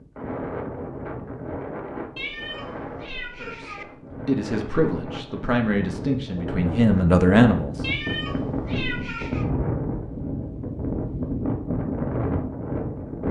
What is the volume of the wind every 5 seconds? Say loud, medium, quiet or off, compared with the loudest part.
medium, loud, loud.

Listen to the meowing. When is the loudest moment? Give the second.
8 s.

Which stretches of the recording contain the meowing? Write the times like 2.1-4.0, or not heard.
2.1-3.9, 7.8-9.4.